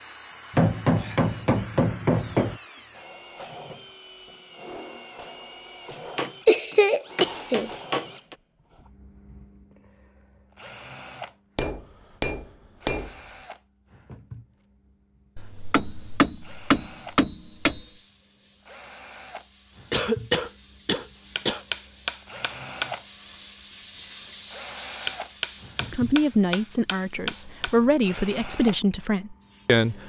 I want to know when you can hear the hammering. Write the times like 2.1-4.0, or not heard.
0.5-2.6, 6.2-8.3, 11.6-13.1, 15.3-17.9, 21.4-22.9, 25.1-27.7.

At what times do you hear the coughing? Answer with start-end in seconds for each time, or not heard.
6.5-7.7, 19.9-21.6.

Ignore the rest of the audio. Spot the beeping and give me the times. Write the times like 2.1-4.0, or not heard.
not heard.